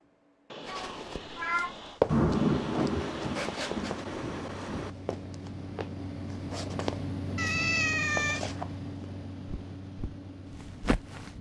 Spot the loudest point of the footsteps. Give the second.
2 s.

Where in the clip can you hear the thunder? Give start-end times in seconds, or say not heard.
2.0-4.9.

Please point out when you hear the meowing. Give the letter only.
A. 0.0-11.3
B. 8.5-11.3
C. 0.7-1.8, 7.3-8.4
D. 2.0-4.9
C.